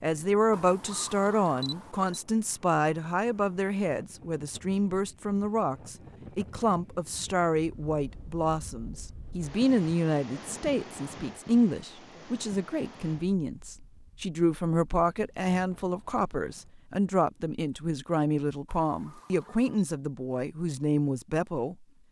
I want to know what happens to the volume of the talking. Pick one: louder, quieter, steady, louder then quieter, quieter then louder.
steady.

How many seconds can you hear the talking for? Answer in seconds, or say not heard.
22 s.